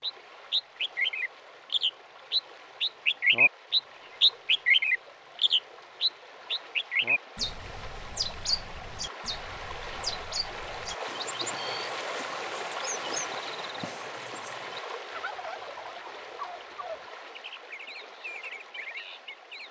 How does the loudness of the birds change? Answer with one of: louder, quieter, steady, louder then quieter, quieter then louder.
quieter.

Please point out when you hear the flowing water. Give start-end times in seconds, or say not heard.
0.0-19.6.